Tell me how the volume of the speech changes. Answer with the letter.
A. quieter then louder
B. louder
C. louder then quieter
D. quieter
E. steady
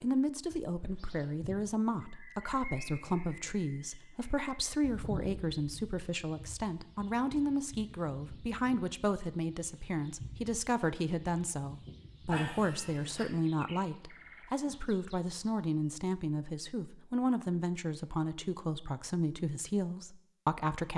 E.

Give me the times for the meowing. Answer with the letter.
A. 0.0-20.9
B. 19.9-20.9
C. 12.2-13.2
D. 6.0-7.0
C.